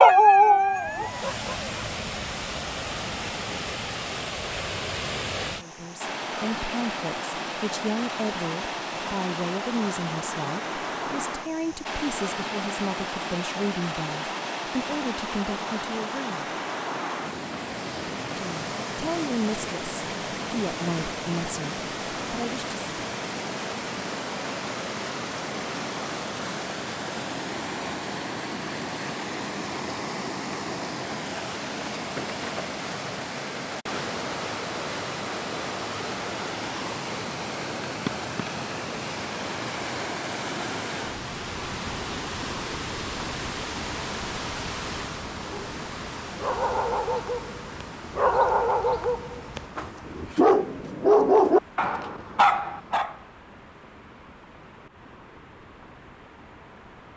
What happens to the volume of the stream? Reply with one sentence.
The loudness of the stream goes down.